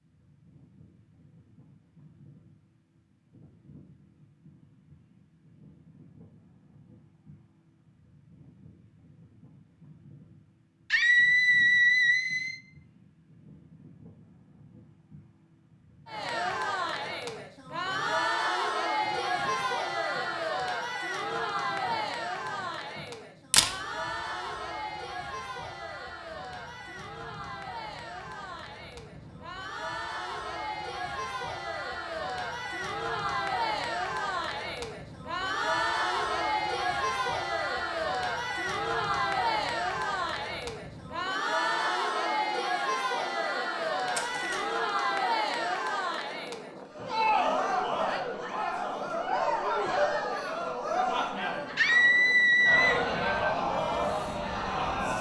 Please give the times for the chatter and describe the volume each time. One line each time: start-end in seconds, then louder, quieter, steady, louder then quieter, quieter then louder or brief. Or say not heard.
16.1-55.1 quieter then louder.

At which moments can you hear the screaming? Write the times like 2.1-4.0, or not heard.
10.9-12.6, 51.8-53.0.